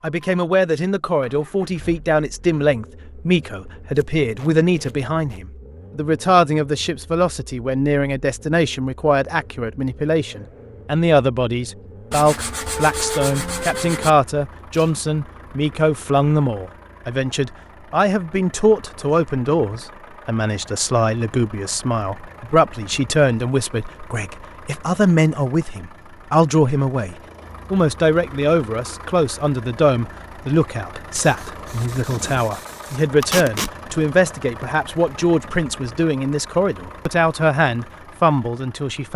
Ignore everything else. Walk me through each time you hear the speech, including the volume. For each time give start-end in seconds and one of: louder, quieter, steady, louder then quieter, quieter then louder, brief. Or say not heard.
0.0-39.1 steady.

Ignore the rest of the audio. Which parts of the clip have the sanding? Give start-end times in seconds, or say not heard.
12.1-14.1, 31.1-33.0.